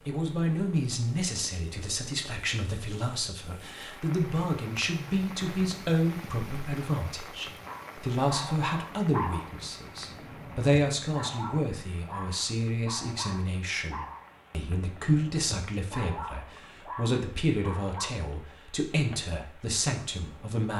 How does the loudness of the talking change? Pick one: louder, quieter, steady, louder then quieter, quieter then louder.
steady.